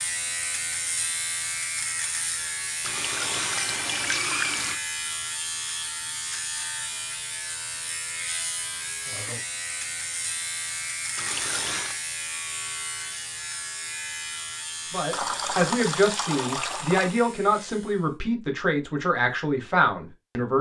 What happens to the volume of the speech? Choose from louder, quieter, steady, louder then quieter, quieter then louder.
steady.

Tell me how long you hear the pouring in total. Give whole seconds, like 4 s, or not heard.
5 s.